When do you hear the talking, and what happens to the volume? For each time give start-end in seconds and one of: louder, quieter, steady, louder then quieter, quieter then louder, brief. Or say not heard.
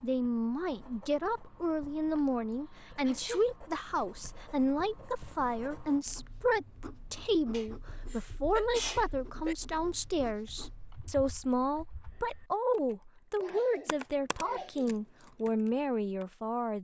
0.0-16.7 steady.